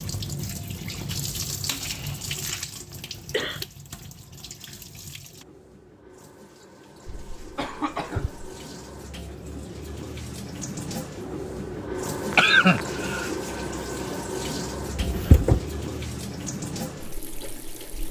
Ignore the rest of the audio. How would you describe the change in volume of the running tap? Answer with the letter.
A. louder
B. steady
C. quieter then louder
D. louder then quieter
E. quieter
C.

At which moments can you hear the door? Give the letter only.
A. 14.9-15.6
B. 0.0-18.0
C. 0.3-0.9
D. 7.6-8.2
A.